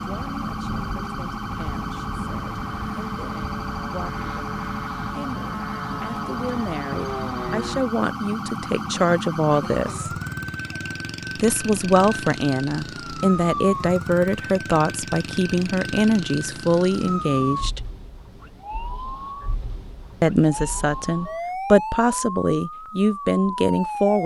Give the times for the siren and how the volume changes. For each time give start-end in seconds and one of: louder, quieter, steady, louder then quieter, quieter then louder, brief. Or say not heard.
0.0-24.2 steady.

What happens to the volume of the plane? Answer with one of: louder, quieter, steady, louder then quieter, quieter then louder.
louder.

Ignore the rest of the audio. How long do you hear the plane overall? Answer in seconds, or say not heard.
8 s.